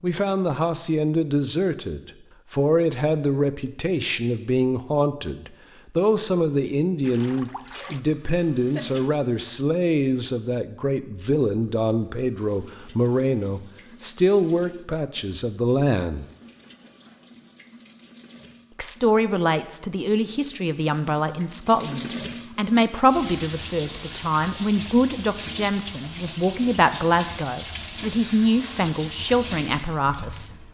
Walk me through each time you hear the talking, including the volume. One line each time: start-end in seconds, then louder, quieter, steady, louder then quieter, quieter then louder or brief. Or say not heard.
0.0-16.2 steady
18.8-30.6 steady.